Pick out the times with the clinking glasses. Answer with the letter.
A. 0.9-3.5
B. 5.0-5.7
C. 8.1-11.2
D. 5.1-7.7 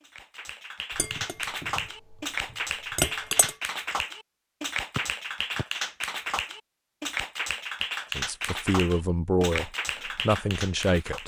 A.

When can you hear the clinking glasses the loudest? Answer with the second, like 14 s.
3 s.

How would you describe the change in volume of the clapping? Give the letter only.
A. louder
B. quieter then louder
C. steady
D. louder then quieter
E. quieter
C.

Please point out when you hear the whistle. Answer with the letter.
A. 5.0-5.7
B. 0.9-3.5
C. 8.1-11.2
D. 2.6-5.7
A.